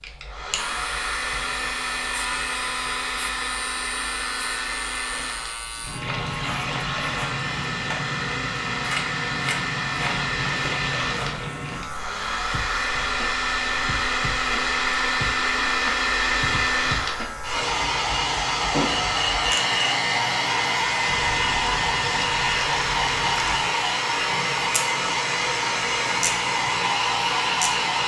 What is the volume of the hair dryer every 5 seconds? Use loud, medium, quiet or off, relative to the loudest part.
medium, medium, loud, loud, loud, loud.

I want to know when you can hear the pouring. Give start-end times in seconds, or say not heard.
6.0-7.3, 9.9-11.5, 21.1-23.6.